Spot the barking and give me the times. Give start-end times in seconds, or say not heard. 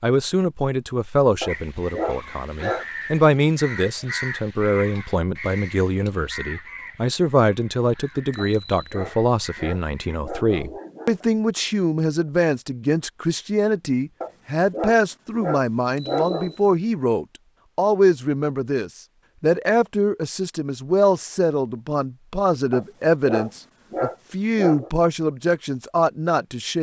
1.4-2.9, 8.3-11.2, 14.2-16.6, 22.7-24.9.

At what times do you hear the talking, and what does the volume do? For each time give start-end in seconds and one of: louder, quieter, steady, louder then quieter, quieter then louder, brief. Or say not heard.
0.0-26.7 steady.